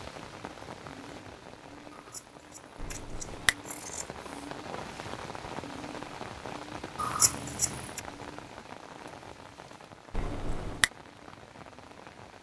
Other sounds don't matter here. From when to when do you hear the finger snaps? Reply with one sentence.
You can hear the finger snaps from 2.8 to 3.5 s and from 10.1 to 10.9 s.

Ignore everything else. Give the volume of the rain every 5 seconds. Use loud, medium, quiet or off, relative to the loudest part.
loud, loud, medium.